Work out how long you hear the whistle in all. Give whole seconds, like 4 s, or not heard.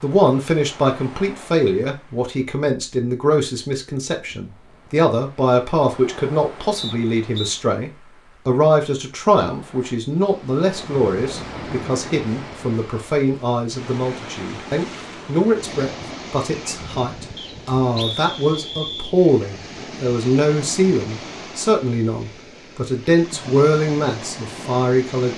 3 s.